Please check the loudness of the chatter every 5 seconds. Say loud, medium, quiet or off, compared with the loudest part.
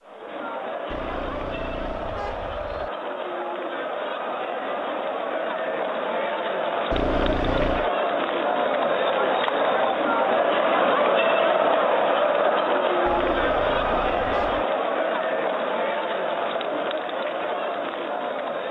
medium, loud, loud, medium.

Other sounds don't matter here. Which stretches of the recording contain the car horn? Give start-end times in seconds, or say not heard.
0.8-2.9, 6.9-7.9, 13.1-14.7.